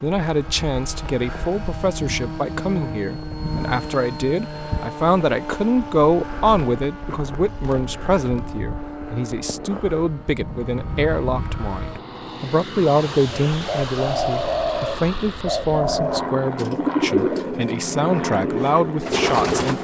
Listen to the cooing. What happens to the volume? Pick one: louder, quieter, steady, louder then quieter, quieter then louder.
steady.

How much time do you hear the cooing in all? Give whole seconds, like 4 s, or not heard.
6 s.